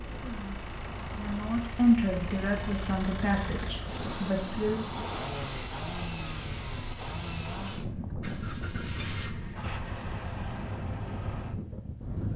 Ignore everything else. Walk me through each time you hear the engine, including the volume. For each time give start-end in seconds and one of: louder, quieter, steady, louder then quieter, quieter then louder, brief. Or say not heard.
0.0-12.3 louder then quieter.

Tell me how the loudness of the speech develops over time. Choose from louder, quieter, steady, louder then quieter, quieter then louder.
louder then quieter.